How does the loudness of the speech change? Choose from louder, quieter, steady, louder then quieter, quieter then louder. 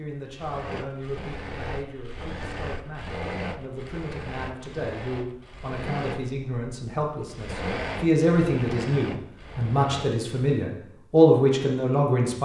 louder.